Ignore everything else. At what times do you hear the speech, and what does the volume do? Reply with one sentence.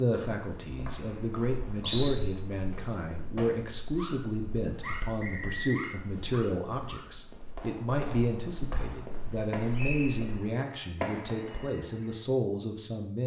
The speech can be heard from 0.0 to 13.2 s, at a steady volume.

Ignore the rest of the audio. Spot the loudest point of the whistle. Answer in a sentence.
The loudest moment of the whistle is at 2 seconds.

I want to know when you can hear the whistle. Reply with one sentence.
You can hear the whistle from 0.1 to 2.1 s, from 4.8 to 5.9 s and from 9.8 to 10.2 s.